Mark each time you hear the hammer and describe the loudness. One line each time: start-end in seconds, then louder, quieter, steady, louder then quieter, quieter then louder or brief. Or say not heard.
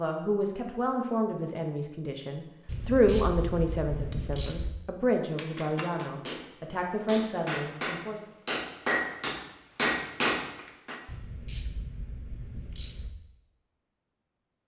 5.3-11.0 louder.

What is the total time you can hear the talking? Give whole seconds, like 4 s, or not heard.
8 s.